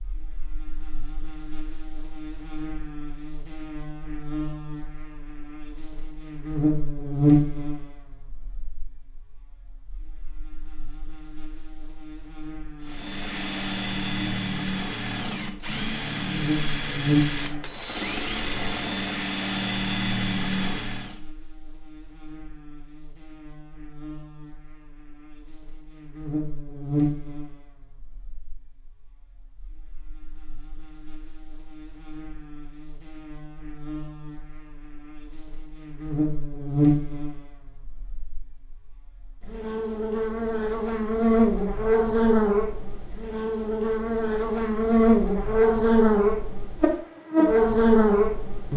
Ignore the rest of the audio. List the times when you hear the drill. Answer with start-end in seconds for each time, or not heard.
12.8-21.2.